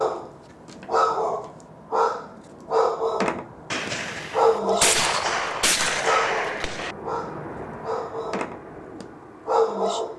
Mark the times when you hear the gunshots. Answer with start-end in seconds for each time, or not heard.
3.7-7.0.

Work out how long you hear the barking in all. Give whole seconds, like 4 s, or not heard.
10 s.